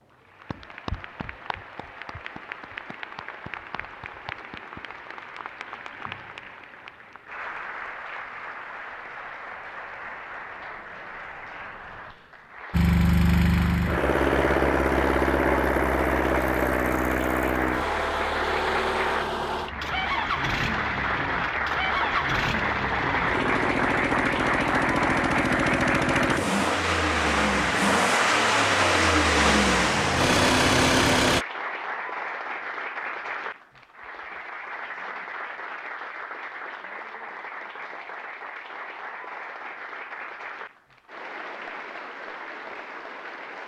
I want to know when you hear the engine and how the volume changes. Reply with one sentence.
The engine can be heard from 12.7 to 31.4 s, getting quieter then louder.